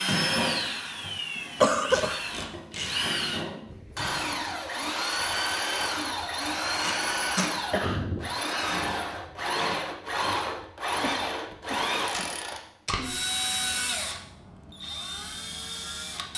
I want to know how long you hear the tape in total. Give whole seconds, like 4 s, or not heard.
3 s.